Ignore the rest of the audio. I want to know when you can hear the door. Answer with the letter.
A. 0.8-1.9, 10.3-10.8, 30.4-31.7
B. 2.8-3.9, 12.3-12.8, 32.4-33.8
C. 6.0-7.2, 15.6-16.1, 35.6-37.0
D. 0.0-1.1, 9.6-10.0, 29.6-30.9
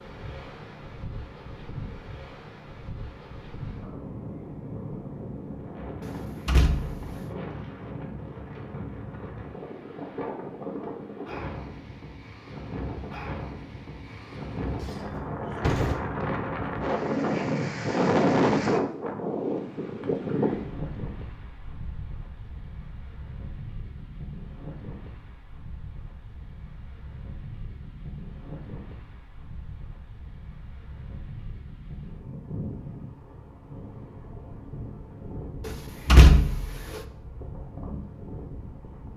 C.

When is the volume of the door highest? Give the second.
36 s.